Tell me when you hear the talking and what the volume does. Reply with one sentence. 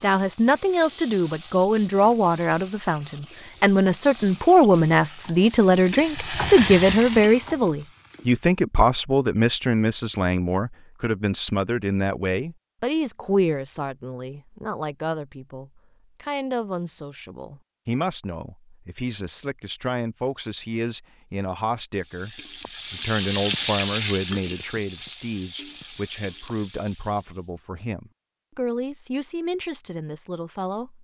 The talking can be heard from 0.0 to 30.9 s, getting quieter.